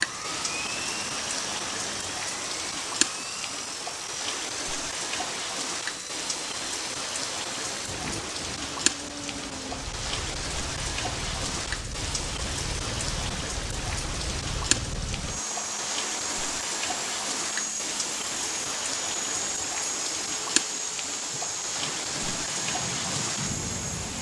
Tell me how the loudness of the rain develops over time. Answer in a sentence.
The loudness of the rain stays about the same.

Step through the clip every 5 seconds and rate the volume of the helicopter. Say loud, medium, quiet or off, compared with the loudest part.
loud, medium, medium, loud, loud.